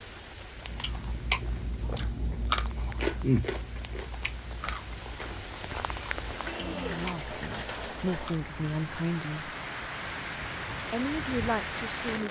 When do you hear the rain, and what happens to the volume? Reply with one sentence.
The rain can be heard from 0.0 to 12.2 s, getting louder.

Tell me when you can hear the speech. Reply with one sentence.
You can hear the speech from 6.8 to 9.6 s and from 10.9 to 12.2 s.